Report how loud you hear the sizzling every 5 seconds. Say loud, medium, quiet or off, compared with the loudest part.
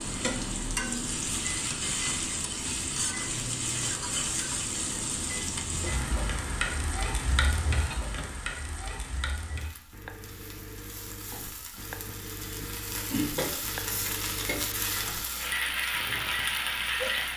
loud, medium, medium, loud.